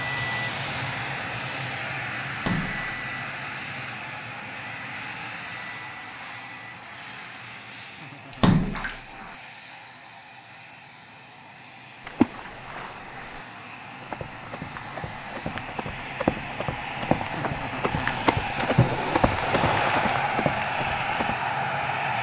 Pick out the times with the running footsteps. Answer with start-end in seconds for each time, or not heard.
14.0-21.4.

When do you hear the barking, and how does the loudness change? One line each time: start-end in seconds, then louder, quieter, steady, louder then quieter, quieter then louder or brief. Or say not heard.
not heard.